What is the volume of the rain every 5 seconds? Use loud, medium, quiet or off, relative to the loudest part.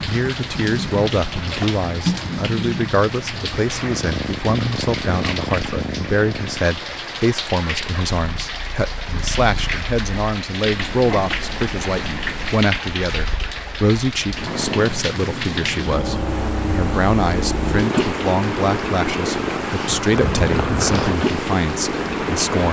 medium, medium, medium, loud, loud.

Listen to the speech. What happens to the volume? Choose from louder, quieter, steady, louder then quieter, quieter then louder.
steady.